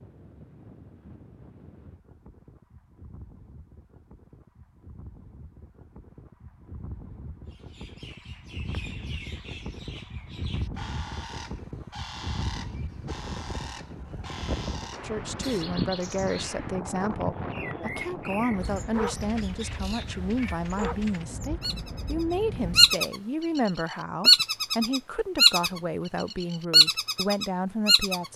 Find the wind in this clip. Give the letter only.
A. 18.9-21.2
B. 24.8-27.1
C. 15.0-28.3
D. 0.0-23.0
D.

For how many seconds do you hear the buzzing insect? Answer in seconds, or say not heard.
not heard.